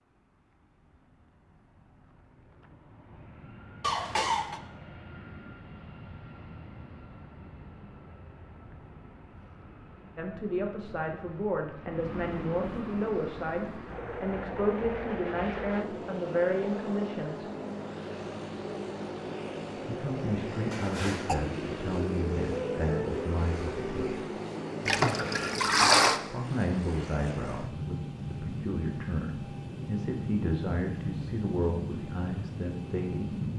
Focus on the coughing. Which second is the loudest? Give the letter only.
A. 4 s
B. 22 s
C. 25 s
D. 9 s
A.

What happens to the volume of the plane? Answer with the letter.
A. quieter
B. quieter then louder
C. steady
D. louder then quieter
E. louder
E.